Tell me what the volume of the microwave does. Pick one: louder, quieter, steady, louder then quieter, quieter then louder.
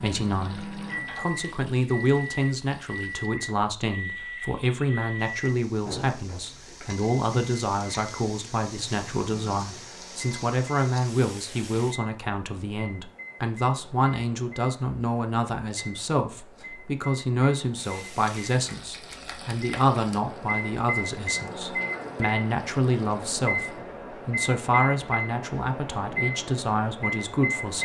quieter then louder.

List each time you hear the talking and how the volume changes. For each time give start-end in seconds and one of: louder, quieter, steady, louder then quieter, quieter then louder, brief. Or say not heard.
0.0-27.7 steady.